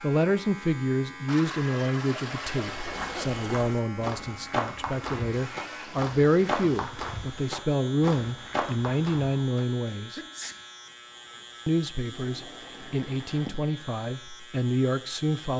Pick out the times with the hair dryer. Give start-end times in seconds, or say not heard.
not heard.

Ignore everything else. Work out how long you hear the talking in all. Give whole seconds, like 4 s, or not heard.
14 s.